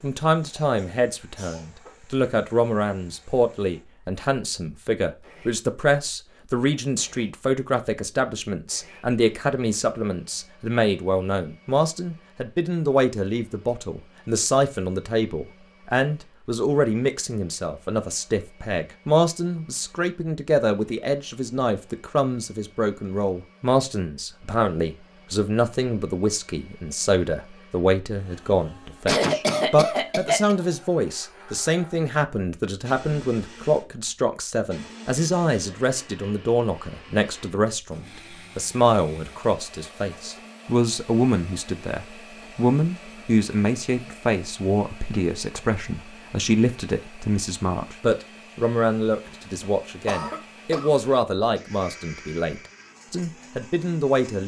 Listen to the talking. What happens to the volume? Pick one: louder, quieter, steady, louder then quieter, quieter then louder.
steady.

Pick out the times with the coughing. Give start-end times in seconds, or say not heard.
0.4-1.9, 29.1-30.6, 49.6-50.9.